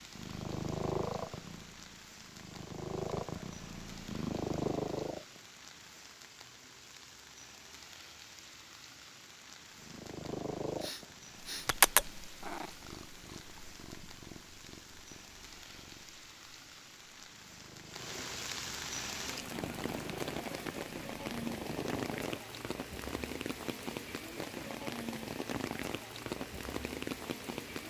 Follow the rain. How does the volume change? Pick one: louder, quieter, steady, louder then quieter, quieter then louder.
louder.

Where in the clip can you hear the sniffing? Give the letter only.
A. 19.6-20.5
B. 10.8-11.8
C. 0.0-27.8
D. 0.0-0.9
B.